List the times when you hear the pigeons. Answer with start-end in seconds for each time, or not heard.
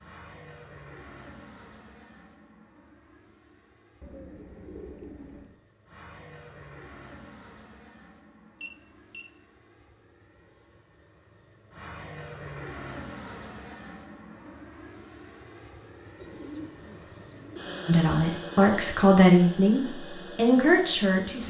4.0-5.6, 16.2-17.8.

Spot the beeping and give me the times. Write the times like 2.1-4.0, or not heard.
8.6-9.3.